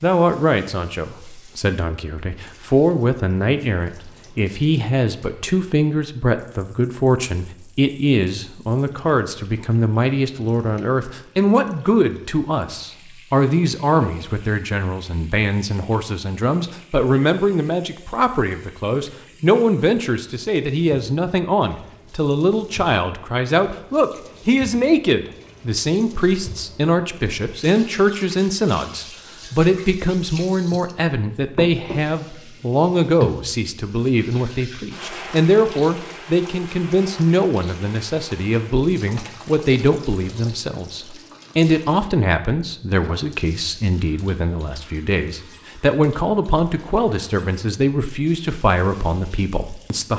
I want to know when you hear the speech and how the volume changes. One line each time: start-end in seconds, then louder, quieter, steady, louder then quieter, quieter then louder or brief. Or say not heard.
0.0-50.1 steady.